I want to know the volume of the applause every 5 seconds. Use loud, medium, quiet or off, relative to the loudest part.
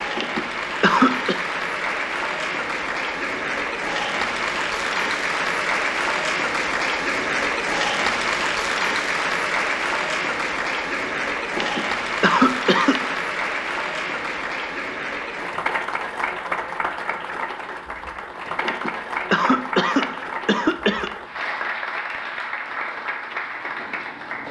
loud, loud, loud, medium, medium.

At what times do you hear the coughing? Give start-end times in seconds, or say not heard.
0.1-1.4, 11.6-13.2, 18.6-21.1.